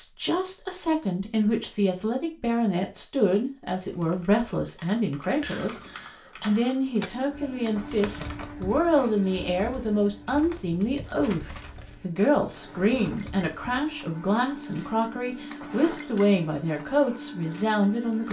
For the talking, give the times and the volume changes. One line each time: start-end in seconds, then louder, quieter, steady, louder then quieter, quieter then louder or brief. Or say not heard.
0.0-18.2 steady.